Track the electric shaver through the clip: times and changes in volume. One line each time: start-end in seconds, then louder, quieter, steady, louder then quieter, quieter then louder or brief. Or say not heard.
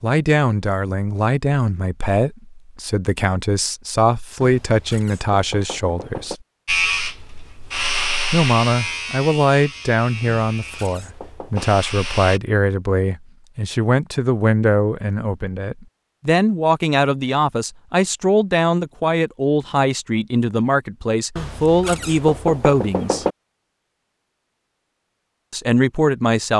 6.7-12.4 quieter.